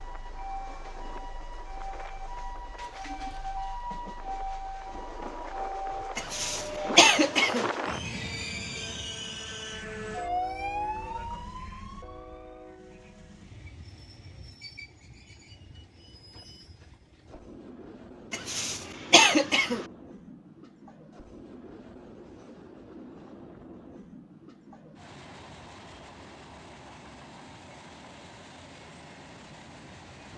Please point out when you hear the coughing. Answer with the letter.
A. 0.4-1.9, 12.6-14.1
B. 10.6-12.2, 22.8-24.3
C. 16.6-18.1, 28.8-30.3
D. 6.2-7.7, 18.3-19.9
D.